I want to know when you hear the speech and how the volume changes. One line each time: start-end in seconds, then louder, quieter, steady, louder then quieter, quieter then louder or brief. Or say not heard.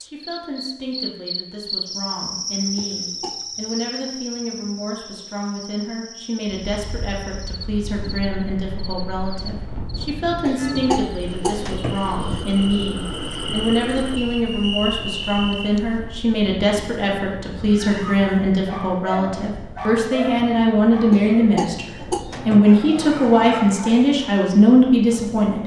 0.0-25.6 louder.